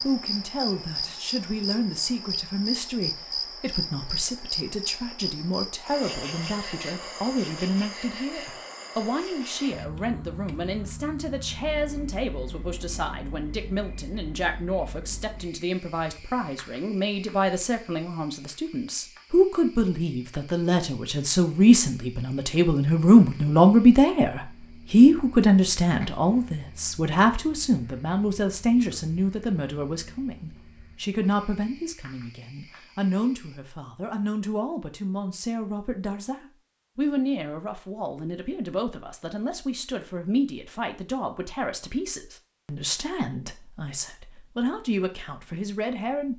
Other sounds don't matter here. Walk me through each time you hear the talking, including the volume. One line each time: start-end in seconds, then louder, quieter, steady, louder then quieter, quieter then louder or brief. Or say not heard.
0.0-46.3 louder then quieter.